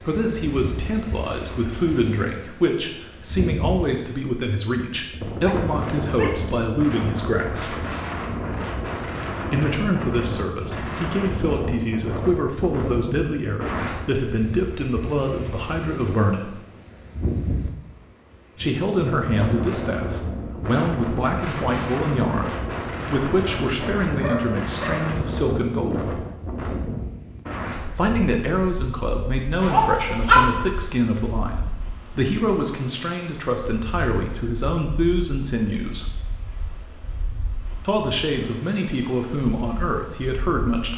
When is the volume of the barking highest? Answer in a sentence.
The volume of the barking peaks at 30 seconds.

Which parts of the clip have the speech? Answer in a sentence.
You can hear the speech from 0.0 to 7.8 s, from 9.4 to 16.6 s, from 18.6 to 26.1 s, from 27.9 to 36.0 s and from 37.8 to 40.9 s.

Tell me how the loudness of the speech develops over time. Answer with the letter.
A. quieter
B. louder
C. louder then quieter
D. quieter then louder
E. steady
E.